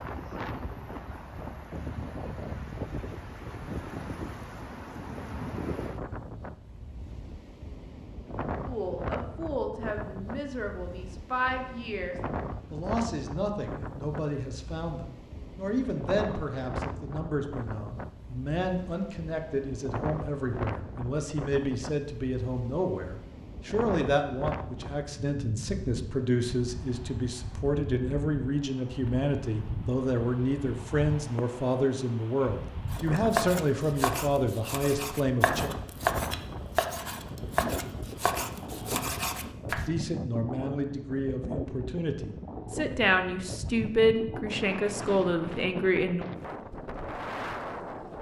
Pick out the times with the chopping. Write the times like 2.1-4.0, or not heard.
32.9-39.9.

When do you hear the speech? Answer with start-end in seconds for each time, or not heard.
8.7-35.7, 39.9-46.2.